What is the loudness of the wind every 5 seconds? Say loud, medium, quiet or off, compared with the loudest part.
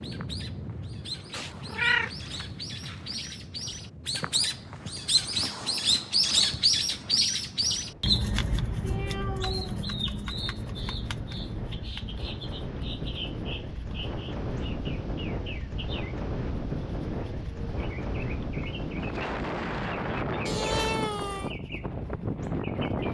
medium, quiet, medium, loud, loud.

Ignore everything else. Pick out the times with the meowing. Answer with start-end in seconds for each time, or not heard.
1.3-3.3, 8.8-9.8, 20.4-21.6.